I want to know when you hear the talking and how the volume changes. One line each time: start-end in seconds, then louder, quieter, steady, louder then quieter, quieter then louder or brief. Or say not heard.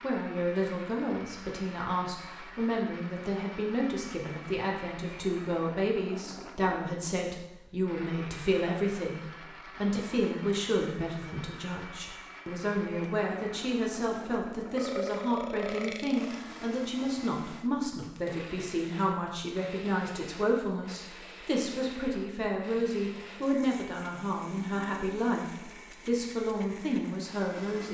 0.0-27.8 steady.